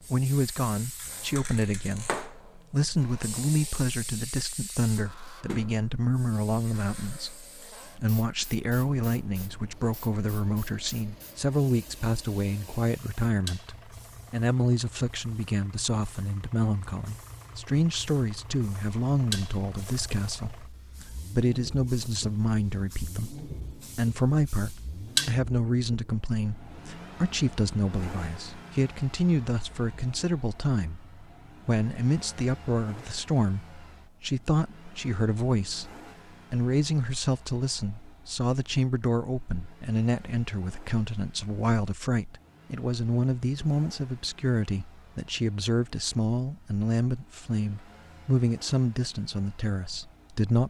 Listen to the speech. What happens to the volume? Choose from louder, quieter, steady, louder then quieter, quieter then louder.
steady.